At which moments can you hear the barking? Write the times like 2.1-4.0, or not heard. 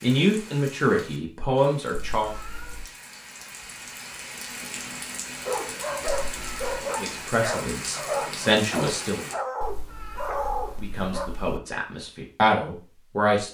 5.2-11.3.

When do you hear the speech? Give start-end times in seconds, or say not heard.
0.0-2.4, 7.0-9.2, 10.8-13.4.